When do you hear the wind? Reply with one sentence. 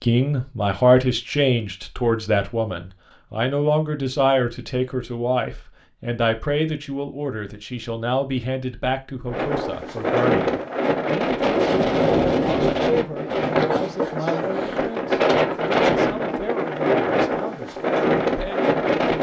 The wind can be heard from 9.2 to 19.1 s.